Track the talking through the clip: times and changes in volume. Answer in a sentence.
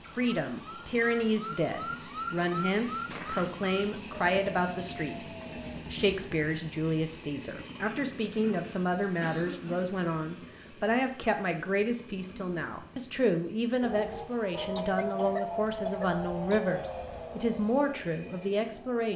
You can hear the talking from 0.1 to 19.1 s, at a steady volume.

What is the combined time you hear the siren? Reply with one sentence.
The siren can be heard for 11 seconds in total.